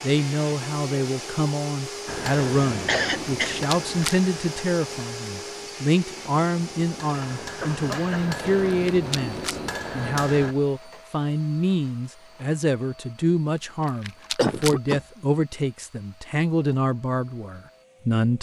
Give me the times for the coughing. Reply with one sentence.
You can hear the coughing from 2.9 to 3.5 s, from 7.1 to 8.2 s and from 14.3 to 15.2 s.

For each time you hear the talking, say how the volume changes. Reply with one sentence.
The talking can be heard from 0.0 to 18.3 s, at a steady volume.